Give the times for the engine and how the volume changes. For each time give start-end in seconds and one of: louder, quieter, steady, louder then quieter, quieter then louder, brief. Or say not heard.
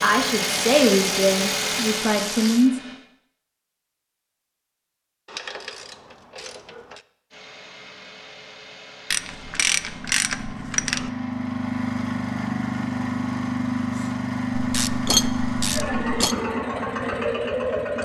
0.0-3.0 brief
7.3-17.9 louder.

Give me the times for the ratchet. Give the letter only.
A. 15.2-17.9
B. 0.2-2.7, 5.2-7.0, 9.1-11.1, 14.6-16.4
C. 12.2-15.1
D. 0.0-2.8
B.